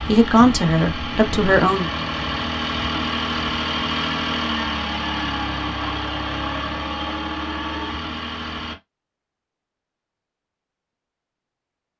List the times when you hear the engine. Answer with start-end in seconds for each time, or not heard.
0.0-8.8.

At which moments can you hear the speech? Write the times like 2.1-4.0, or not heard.
0.1-1.9.